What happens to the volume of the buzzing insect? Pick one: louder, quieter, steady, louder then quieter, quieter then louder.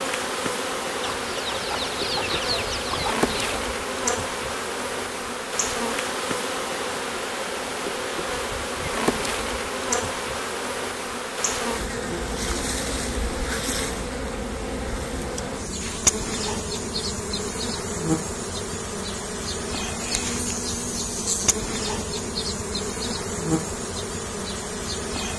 steady.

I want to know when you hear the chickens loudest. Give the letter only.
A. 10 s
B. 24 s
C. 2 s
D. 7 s
C.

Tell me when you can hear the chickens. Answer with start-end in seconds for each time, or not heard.
1.0-3.6.